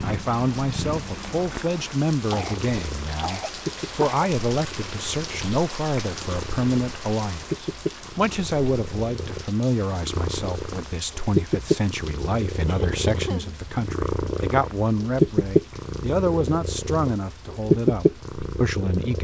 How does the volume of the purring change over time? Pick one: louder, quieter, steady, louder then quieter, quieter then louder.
louder.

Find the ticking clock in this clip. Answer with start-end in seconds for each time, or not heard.
not heard.